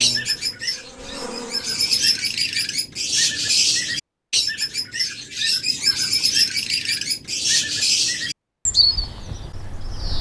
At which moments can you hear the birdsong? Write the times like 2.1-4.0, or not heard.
0.0-10.1.